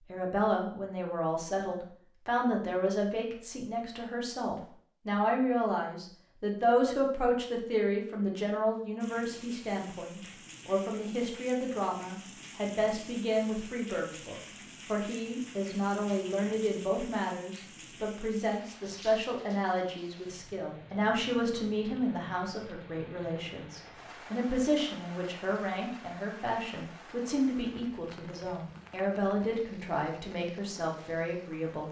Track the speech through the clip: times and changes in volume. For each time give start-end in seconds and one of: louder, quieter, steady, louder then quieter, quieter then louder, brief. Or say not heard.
0.1-31.8 steady.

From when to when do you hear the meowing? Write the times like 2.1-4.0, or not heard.
not heard.